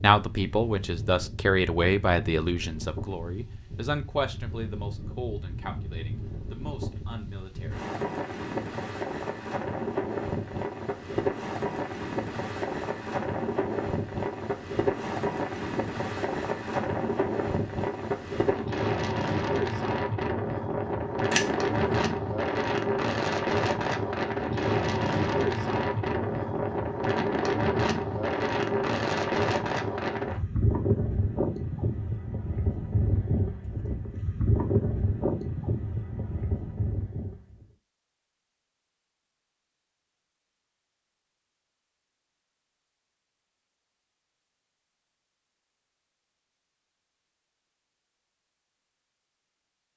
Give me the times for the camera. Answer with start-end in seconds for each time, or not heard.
21.3-22.1.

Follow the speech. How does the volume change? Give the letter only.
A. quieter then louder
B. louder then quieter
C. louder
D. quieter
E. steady
D.